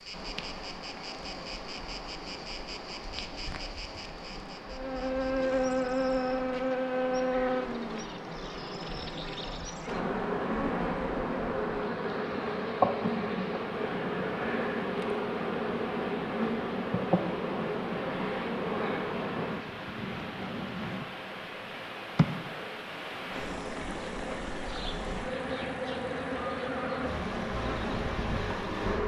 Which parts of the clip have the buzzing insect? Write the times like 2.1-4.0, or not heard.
0.0-29.0.